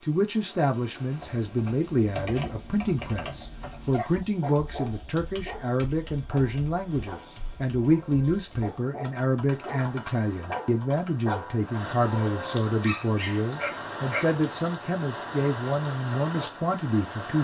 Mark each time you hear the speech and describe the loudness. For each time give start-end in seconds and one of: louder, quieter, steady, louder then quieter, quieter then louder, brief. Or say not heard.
0.0-17.3 steady.